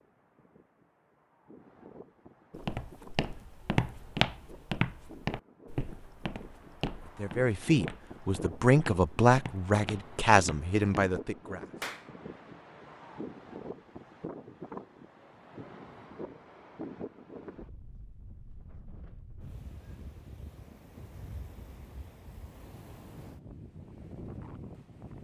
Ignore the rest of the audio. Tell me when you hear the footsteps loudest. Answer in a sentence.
The volume of the footsteps peaks at 4 seconds.